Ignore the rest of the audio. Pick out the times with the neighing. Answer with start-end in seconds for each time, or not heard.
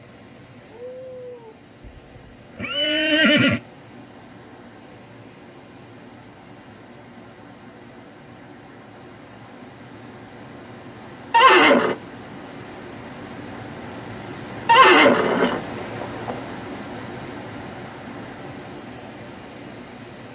2.5-3.6, 11.3-11.9, 14.7-16.4.